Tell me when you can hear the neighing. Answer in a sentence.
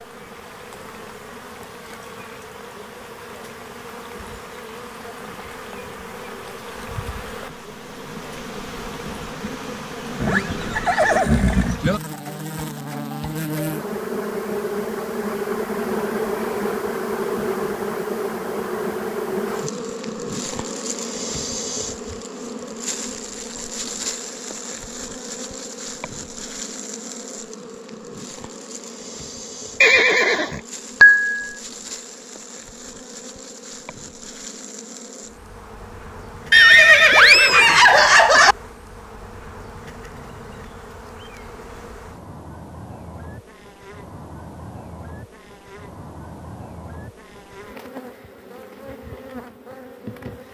You can hear the neighing from 10.2 to 11.8 s, from 29.8 to 31.4 s and from 36.5 to 38.5 s.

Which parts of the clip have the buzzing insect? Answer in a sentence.
You can hear the buzzing insect from 0.0 to 50.4 s.